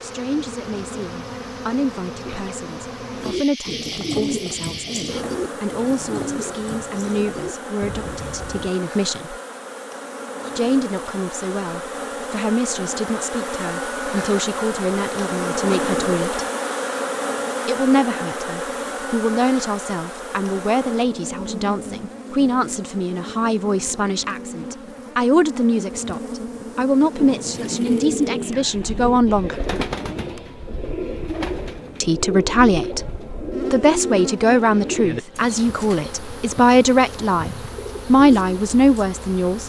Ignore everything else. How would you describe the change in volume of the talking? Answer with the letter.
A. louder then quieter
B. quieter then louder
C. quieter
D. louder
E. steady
D.